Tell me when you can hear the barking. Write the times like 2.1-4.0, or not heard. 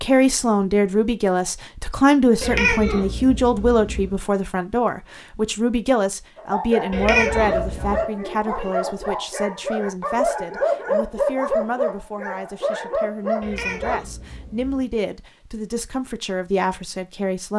6.3-14.0.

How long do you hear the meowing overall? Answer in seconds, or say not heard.
4 s.